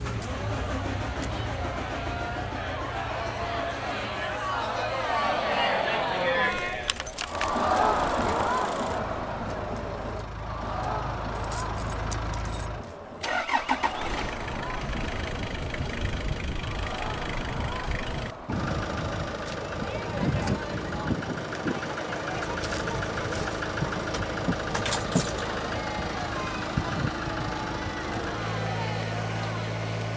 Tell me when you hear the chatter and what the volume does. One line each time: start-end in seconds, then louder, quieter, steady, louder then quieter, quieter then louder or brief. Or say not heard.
0.1-29.9 quieter.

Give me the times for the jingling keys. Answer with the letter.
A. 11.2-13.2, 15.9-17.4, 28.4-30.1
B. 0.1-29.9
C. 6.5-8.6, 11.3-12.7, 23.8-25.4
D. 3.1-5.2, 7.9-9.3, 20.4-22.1
C.